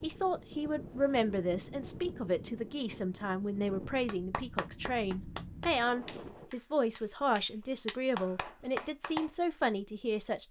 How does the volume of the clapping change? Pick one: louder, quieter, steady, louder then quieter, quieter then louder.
quieter then louder.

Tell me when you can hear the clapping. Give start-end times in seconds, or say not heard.
4.0-9.3.